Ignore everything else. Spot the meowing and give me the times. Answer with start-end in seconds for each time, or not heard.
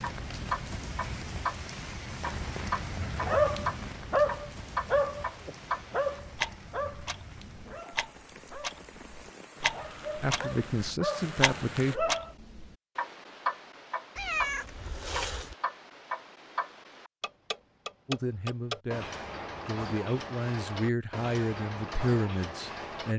14.2-15.6.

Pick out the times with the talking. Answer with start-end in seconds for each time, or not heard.
10.2-11.9, 18.1-23.1.